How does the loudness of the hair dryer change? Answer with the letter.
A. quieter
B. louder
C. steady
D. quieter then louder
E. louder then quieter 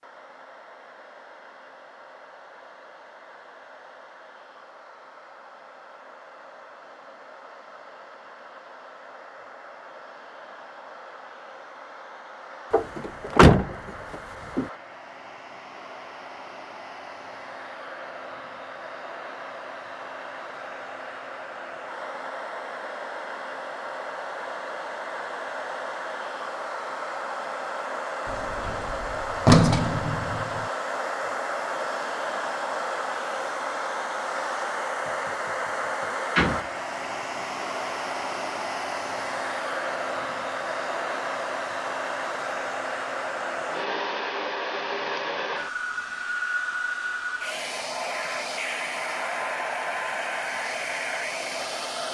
B.